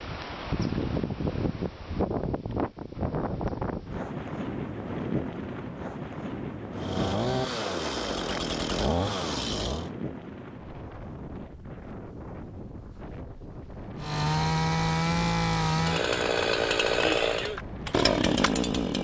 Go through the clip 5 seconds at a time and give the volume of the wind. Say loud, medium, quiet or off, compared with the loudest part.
loud, loud, medium, medium.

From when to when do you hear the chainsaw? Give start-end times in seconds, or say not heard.
6.8-9.9, 14.0-18.9.